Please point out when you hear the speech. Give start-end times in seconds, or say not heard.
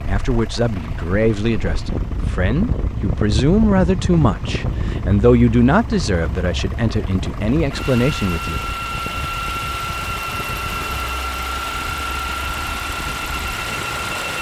0.0-9.2.